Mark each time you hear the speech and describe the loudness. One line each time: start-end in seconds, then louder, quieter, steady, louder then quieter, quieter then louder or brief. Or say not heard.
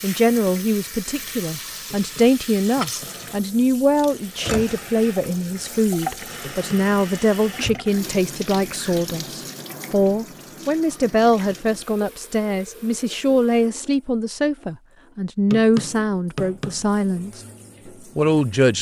0.0-17.4 steady
18.1-18.7 brief.